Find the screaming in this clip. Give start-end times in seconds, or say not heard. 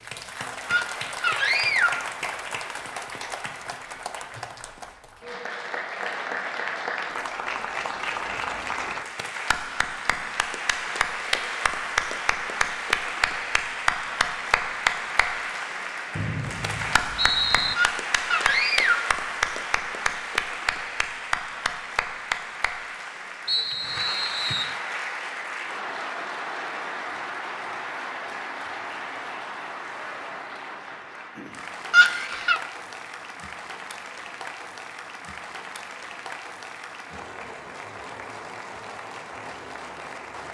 0.7-2.1, 17.8-19.1, 31.9-32.6.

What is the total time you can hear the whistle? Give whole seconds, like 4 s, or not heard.
3 s.